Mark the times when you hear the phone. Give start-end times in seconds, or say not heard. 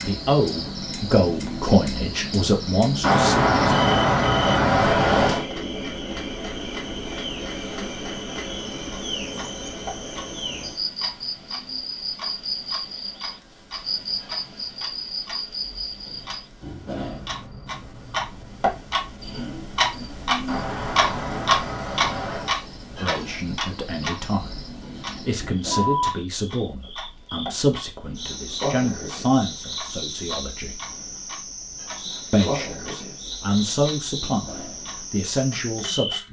3.0-5.5, 20.4-22.6.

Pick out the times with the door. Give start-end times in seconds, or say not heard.
not heard.